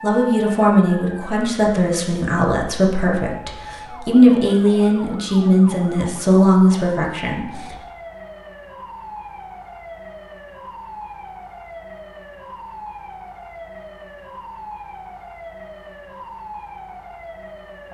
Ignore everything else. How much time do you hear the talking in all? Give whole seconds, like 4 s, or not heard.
8 s.